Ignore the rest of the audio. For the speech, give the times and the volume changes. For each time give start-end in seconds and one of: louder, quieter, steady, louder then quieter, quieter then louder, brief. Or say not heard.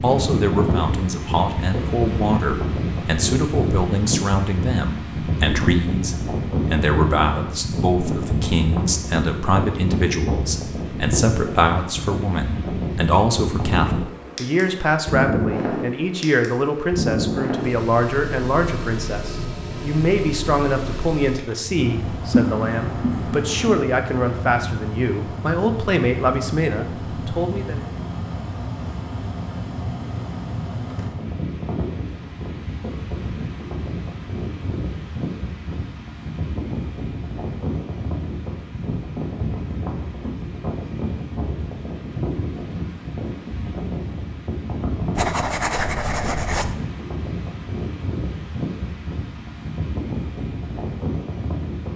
0.0-27.8 steady.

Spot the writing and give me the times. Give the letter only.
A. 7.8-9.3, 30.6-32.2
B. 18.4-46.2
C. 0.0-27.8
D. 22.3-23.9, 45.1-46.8
D.